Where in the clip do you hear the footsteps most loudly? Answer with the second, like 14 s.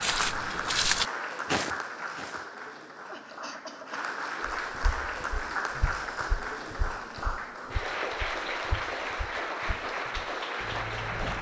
1 s.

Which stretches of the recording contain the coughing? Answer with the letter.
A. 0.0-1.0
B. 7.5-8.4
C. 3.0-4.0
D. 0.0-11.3
C.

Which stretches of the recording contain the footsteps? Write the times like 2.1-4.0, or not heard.
0.0-2.5, 4.7-11.3.